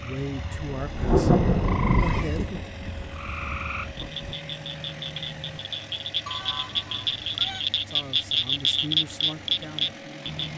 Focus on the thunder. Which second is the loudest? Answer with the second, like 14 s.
1 s.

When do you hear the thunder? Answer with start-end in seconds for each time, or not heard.
0.7-4.3.